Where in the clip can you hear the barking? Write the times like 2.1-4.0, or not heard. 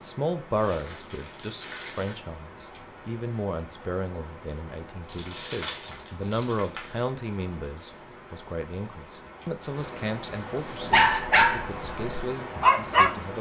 10.8-13.2.